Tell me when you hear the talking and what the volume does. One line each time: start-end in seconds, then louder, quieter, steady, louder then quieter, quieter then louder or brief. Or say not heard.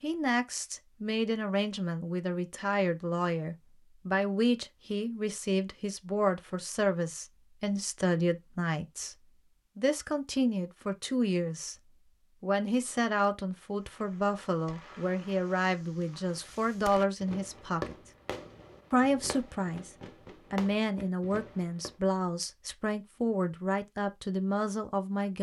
0.0-17.9 steady
18.9-19.9 brief
20.5-25.3 steady.